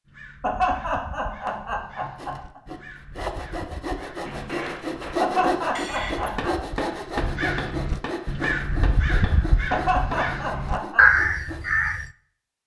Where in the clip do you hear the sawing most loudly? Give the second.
5 s.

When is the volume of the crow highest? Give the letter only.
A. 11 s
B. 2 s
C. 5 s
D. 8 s
A.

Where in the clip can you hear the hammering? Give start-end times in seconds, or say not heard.
4.2-10.2.